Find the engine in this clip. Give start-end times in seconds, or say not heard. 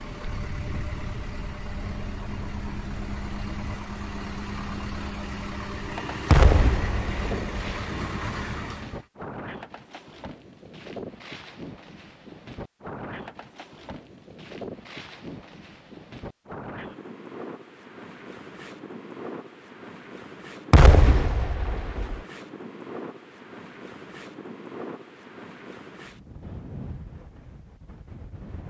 0.0-9.1.